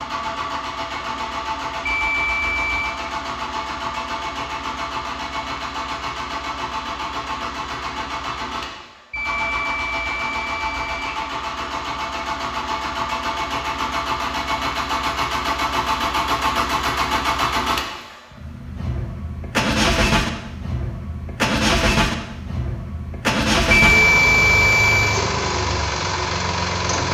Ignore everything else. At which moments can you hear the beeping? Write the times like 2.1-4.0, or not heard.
1.9-3.0, 9.1-11.2, 23.7-25.1.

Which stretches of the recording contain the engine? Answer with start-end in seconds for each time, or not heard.
0.0-27.0.